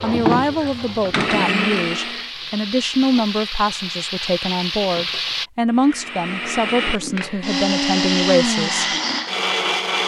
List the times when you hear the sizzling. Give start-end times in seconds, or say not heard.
0.0-5.5.